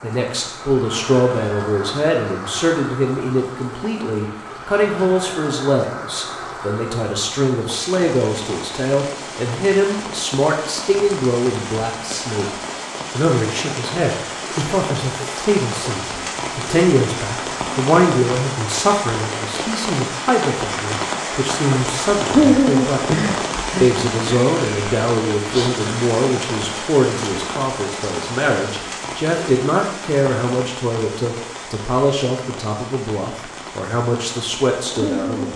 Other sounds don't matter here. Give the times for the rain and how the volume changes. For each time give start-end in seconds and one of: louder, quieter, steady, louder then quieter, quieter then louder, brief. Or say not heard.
0.0-35.5 louder then quieter.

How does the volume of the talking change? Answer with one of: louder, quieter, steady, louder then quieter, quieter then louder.
steady.